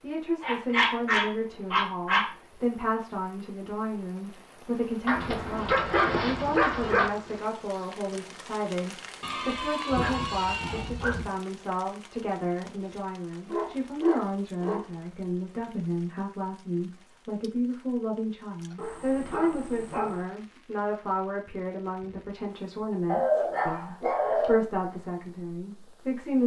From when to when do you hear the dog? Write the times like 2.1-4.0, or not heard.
0.4-2.3, 5.0-7.1, 9.2-11.2, 13.4-15.1, 18.8-20.3, 23.1-24.6.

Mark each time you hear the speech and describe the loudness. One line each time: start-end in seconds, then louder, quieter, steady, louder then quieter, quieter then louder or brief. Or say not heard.
0.0-26.4 steady.